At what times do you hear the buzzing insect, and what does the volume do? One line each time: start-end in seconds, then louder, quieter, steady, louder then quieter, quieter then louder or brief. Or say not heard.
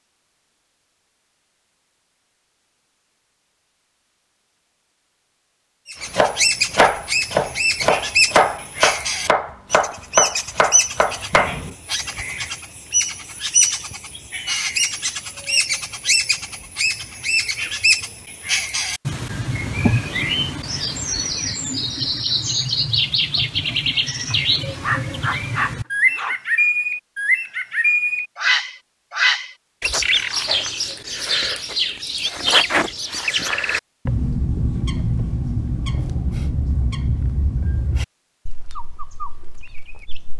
not heard.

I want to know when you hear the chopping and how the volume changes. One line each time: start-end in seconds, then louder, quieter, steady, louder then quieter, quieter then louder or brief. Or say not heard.
6.0-11.8 quieter.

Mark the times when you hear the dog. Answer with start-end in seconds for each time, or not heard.
24.8-26.4.